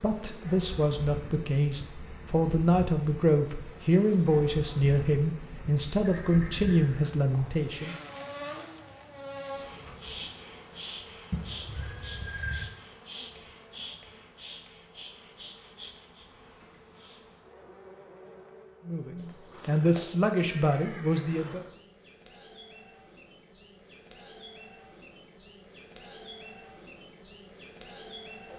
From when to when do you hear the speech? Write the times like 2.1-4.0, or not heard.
0.0-8.0, 18.9-21.6.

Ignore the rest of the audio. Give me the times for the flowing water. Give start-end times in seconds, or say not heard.
not heard.